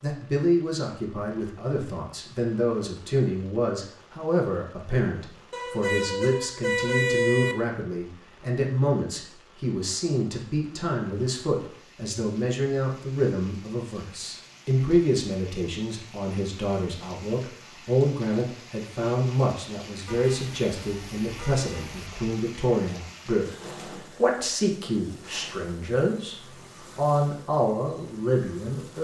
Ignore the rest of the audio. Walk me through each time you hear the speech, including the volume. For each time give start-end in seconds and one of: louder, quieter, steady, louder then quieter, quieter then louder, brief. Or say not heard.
0.0-29.0 steady.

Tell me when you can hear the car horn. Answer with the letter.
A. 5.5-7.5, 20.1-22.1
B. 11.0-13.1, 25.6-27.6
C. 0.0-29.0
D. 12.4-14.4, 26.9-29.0
A.